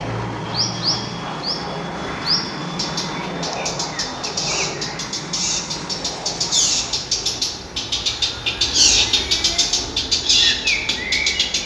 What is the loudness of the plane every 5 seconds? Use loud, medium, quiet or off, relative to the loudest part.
loud, medium, medium.